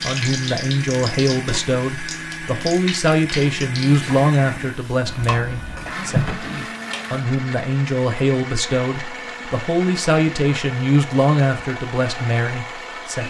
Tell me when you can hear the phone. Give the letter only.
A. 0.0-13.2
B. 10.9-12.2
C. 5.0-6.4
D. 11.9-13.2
C.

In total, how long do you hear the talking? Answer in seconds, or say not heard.
13 s.